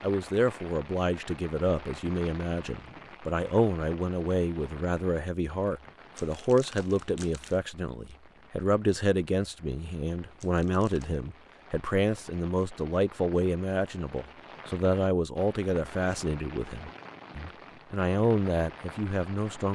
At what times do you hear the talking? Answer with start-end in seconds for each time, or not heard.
0.0-19.7.